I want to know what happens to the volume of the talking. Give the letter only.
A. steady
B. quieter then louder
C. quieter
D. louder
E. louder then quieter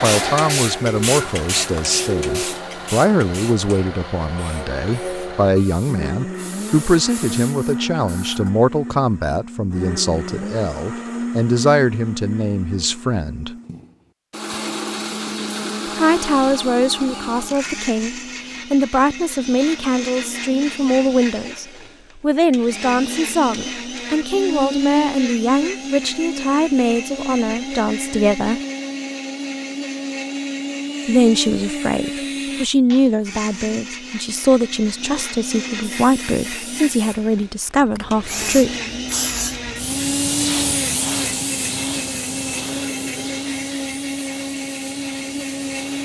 A.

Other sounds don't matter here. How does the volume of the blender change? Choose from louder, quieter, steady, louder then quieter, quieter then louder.
steady.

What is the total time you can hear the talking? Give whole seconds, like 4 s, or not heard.
34 s.